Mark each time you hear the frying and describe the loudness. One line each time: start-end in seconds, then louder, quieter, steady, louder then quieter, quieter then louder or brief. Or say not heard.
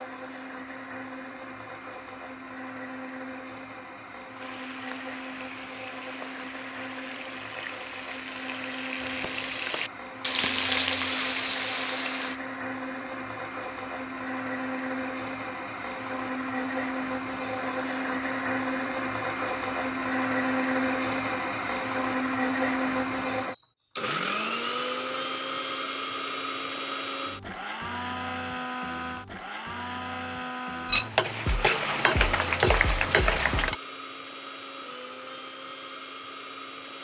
4.3-12.4 louder
30.9-33.8 brief.